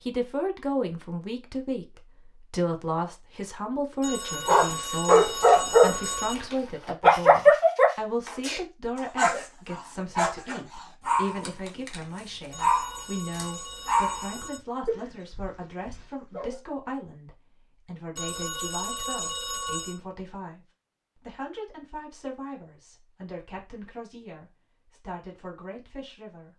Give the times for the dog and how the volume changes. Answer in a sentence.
You can hear the dog from 4.5 to 16.6 s, getting quieter.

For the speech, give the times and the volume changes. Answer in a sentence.
You can hear the speech from 0.1 to 26.5 s, getting quieter.